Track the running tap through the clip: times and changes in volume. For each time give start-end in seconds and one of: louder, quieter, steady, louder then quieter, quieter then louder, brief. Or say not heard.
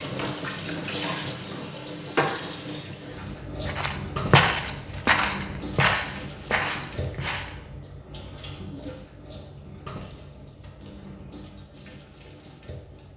0.0-13.1 quieter.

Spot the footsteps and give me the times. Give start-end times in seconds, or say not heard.
3.6-7.5.